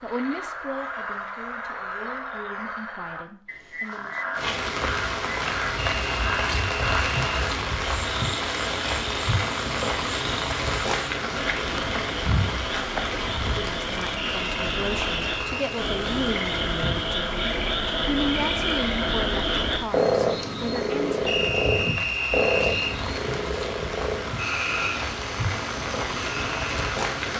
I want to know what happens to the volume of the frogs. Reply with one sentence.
The loudness of the frogs goes up, then down.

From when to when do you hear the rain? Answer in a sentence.
You can hear the rain from 4.3 to 27.3 s.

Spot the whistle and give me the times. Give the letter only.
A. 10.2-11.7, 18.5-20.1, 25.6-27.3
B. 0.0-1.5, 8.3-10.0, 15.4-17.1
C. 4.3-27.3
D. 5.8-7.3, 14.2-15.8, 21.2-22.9
D.